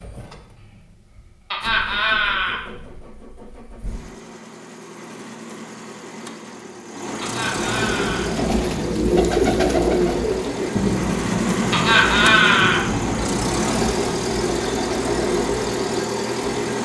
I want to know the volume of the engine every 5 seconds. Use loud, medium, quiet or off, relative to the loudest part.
quiet, medium, loud, loud.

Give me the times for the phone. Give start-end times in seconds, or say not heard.
not heard.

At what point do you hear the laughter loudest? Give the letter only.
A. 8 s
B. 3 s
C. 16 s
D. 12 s
D.